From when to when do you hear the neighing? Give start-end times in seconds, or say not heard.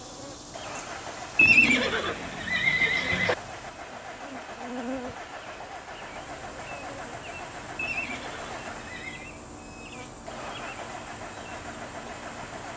1.4-3.4, 7.8-9.3.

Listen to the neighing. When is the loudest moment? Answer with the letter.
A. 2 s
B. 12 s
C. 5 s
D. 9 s
A.